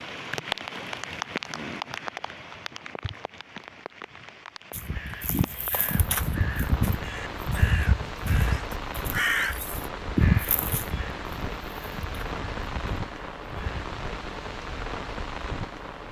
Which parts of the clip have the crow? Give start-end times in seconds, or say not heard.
4.7-13.8.